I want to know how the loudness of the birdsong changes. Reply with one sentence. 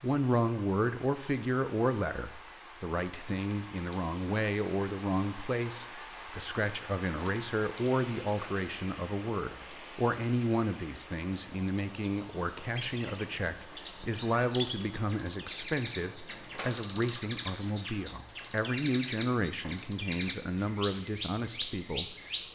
The loudness of the birdsong goes up.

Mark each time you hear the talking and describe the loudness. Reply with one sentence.
You can hear the talking from 0.0 to 22.5 s, at a steady volume.